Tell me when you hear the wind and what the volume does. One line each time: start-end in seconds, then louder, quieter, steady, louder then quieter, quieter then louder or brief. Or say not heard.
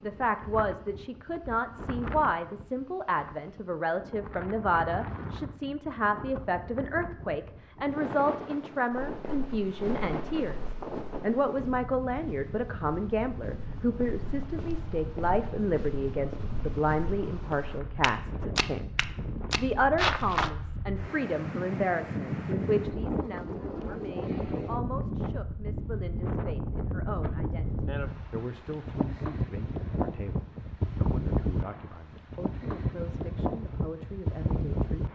0.0-35.0 louder.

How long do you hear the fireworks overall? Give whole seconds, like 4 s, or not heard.
not heard.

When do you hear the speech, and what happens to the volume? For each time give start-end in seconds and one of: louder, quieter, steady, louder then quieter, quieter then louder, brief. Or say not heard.
0.0-35.0 quieter.